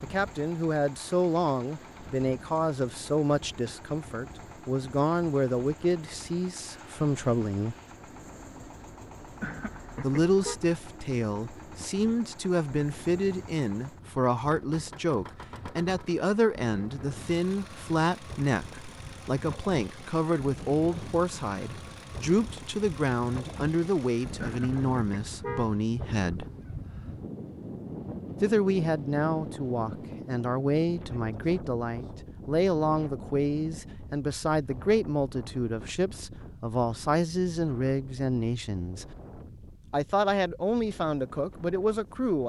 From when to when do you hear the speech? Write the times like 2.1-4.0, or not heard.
0.0-7.8, 10.0-26.4, 28.4-39.1, 39.9-42.4.